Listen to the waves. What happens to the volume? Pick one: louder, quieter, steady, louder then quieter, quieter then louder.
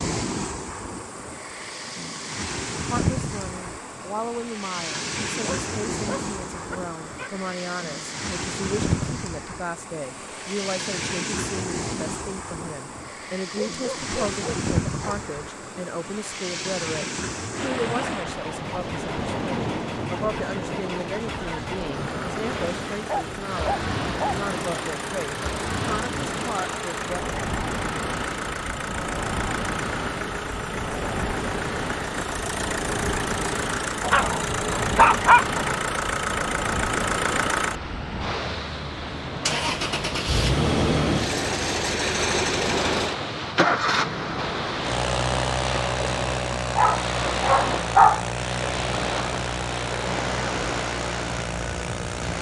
steady.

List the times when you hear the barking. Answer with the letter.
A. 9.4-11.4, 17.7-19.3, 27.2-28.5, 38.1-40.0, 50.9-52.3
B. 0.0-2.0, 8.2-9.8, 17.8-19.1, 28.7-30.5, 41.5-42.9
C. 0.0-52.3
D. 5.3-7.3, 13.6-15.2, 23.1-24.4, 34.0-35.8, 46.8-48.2
D.